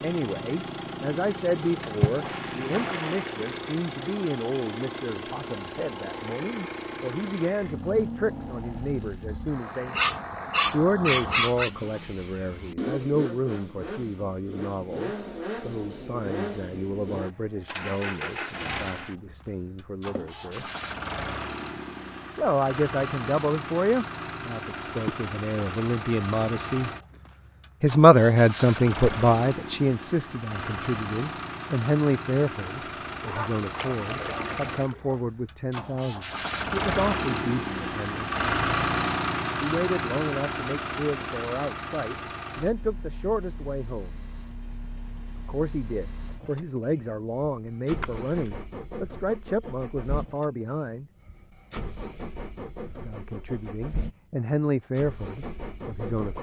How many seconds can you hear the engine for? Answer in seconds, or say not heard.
56 s.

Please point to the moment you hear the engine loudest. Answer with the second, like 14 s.
39 s.